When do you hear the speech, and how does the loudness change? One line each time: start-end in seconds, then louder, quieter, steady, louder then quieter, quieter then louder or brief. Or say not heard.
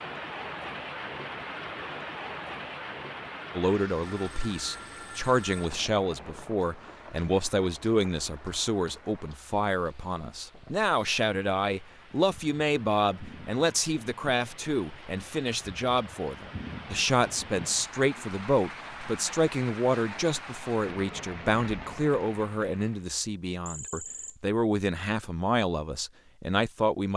3.5-27.1 steady.